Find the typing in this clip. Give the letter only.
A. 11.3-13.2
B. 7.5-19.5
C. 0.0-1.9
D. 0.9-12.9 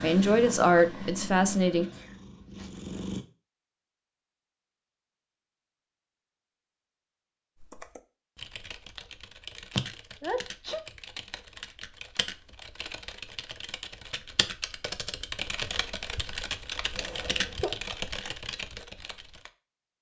B.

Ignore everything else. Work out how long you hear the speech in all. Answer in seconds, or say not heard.
2 s.